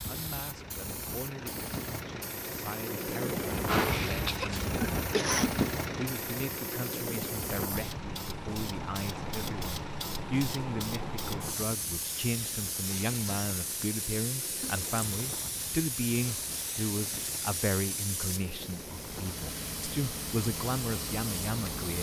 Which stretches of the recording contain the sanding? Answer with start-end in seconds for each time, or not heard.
not heard.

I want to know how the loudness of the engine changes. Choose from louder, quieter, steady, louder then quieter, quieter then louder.
quieter.